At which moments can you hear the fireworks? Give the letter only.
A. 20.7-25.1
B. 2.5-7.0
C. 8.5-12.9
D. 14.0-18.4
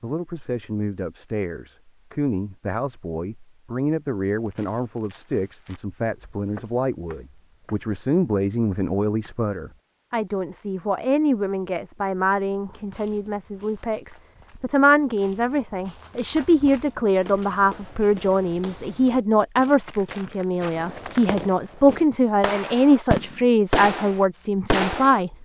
A.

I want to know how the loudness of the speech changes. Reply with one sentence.
The volume of the speech goes up.